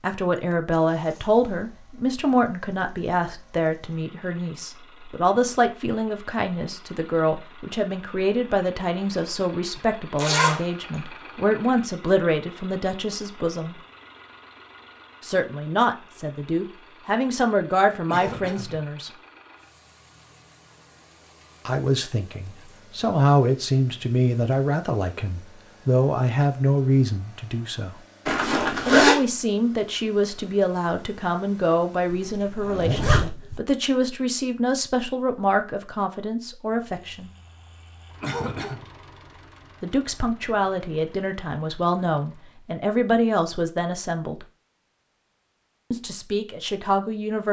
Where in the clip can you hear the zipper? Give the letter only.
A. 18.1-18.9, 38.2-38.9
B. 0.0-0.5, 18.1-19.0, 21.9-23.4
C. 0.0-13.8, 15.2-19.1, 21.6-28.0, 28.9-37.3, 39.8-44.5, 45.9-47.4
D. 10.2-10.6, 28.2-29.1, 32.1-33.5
D.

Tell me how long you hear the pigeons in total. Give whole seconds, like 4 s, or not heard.
not heard.